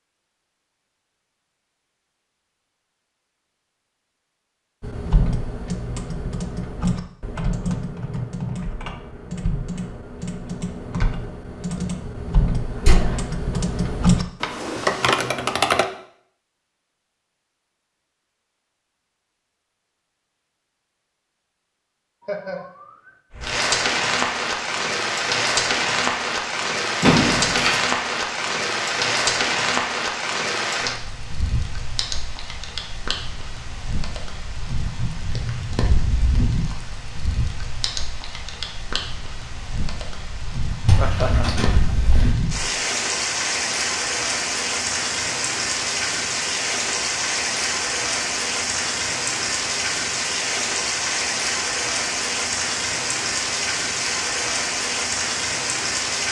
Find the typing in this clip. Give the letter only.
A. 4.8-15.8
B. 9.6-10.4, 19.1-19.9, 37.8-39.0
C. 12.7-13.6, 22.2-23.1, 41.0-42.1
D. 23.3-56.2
A.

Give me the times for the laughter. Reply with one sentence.
The laughter can be heard from 12.7 to 13.6 s, from 22.2 to 23.1 s and from 41.0 to 42.1 s.